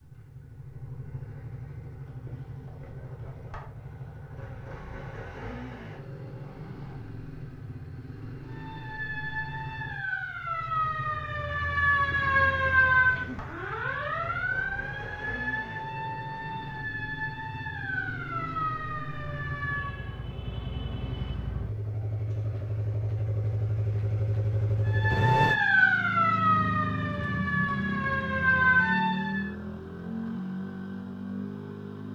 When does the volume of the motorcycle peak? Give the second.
25 s.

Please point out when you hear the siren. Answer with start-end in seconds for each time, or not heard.
8.4-20.2, 24.9-29.5.